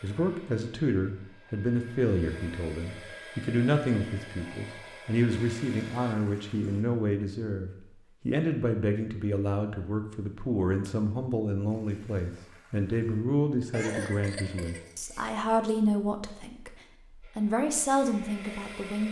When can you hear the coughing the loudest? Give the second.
14 s.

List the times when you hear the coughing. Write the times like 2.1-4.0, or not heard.
13.7-15.3.